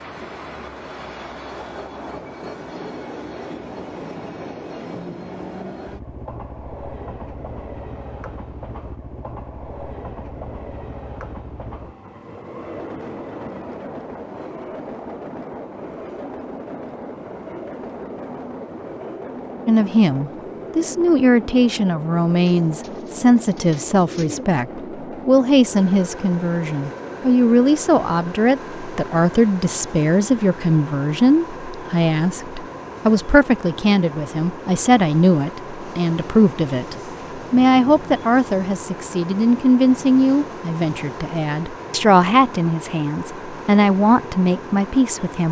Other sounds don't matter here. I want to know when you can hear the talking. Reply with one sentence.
The talking can be heard from 19.6 to 45.4 s.